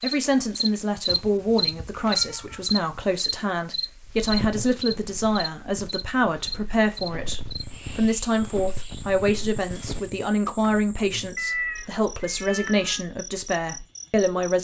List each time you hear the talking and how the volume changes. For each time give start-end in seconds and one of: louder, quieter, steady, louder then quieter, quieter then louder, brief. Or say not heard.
0.0-14.5 steady.